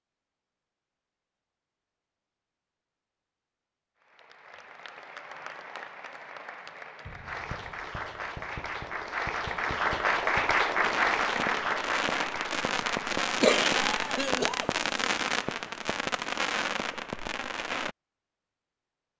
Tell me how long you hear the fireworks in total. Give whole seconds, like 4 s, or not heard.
11 s.